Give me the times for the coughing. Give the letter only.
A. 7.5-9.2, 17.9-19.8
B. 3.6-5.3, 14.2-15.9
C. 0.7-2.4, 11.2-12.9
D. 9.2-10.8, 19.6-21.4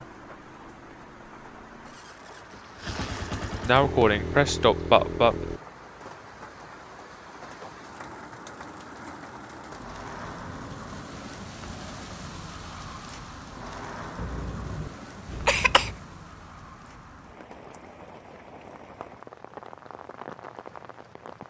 B.